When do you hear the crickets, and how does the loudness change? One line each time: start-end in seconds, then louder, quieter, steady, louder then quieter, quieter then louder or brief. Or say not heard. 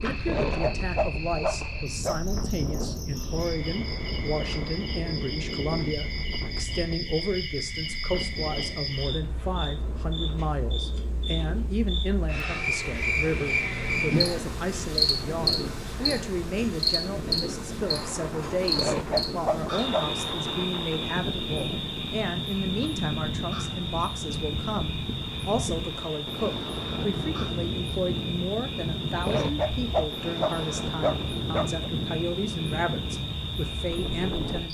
0.0-34.6 louder then quieter.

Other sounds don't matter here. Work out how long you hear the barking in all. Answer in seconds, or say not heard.
6 s.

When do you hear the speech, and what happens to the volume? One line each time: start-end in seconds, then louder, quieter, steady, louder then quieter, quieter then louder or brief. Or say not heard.
0.0-34.6 steady.